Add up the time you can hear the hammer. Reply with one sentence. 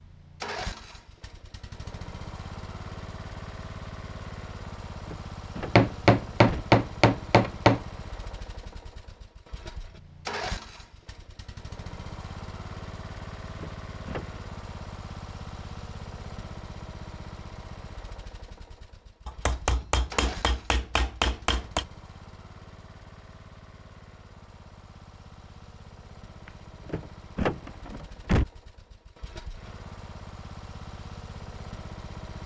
You can hear the hammer for 5 seconds altogether.